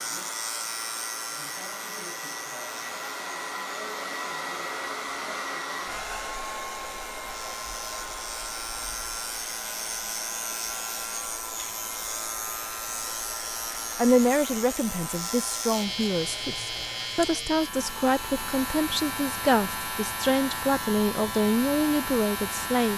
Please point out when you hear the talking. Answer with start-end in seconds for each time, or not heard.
13.9-22.9.